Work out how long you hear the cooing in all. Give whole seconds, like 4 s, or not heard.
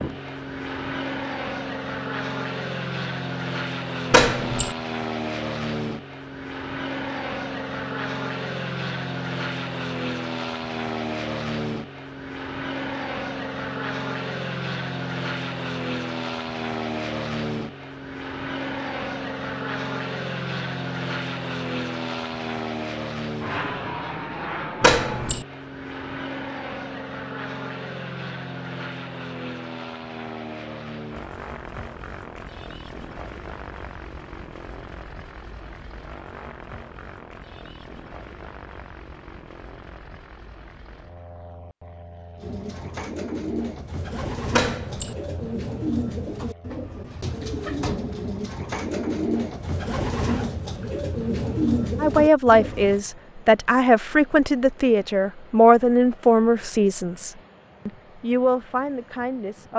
11 s.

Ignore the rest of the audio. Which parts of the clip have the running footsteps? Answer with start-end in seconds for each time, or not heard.
not heard.